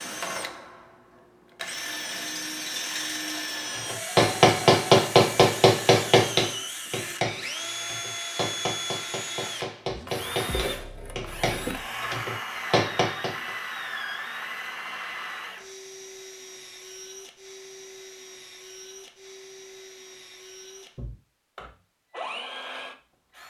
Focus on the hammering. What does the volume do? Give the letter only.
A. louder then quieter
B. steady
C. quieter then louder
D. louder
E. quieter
C.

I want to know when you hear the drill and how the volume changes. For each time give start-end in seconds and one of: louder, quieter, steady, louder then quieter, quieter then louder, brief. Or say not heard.
0.0-23.4 quieter.